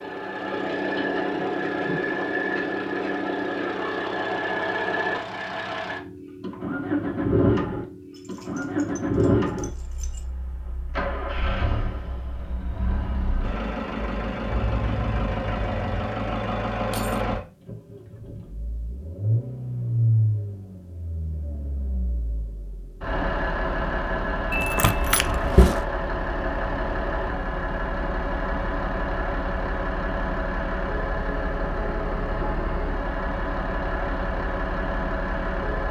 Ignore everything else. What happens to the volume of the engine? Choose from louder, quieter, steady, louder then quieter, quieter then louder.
steady.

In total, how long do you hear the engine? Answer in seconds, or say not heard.
36 s.